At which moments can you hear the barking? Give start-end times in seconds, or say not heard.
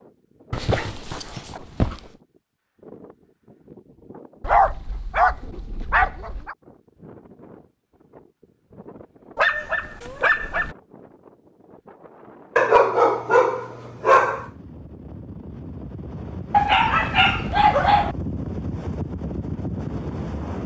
0.5-2.0, 4.4-6.5, 9.3-10.8, 12.6-14.4, 16.5-18.1.